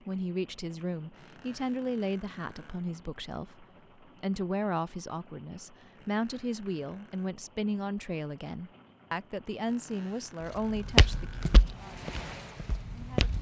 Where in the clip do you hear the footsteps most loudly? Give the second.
11 s.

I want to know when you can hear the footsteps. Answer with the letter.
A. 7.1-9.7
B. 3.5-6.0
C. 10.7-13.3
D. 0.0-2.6
C.